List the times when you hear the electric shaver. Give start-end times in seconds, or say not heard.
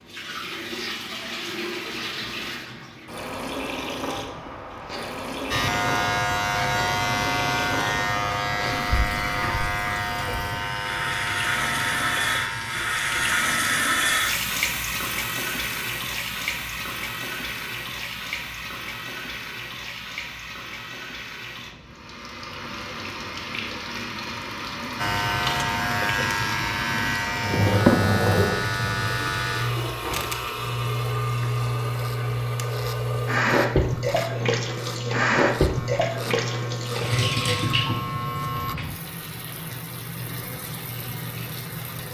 5.5-13.5, 24.9-38.8.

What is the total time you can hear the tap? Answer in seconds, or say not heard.
42 s.